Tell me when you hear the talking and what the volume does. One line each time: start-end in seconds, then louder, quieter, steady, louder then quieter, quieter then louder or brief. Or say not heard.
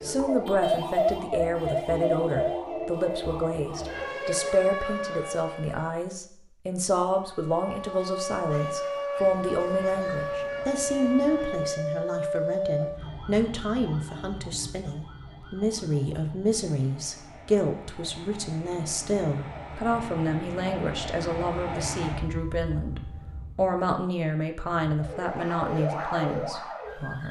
0.0-27.2 steady.